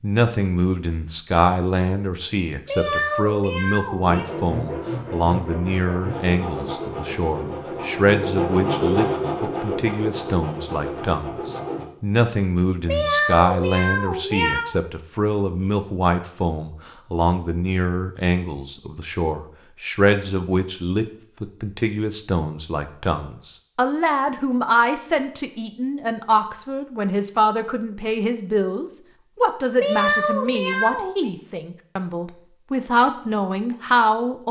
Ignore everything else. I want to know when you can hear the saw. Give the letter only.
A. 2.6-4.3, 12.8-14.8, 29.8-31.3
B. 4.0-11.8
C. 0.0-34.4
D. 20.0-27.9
B.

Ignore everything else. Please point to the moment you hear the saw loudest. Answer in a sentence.
The loudest moment of the saw is at 9 seconds.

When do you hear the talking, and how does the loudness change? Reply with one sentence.
The talking can be heard from 0.0 to 34.4 s, at a steady volume.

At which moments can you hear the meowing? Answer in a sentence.
You can hear the meowing from 2.6 to 4.3 s, from 12.8 to 14.8 s and from 29.8 to 31.3 s.